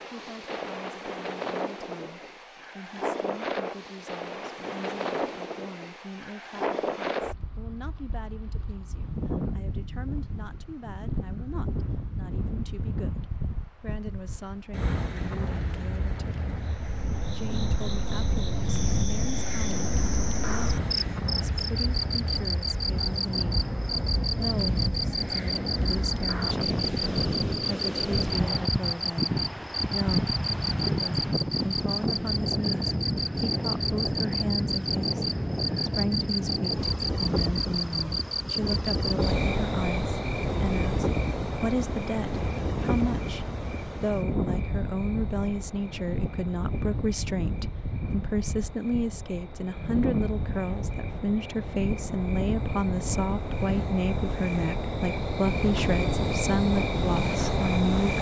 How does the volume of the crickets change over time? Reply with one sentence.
The loudness of the crickets goes down, then up.